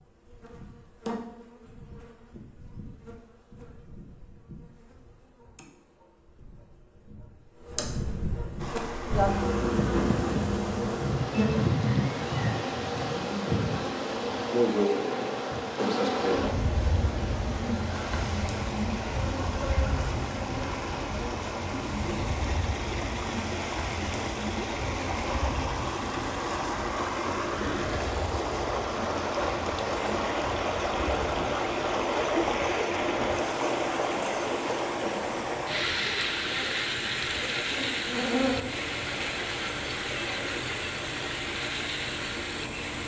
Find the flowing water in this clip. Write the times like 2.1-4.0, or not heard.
8.6-43.0.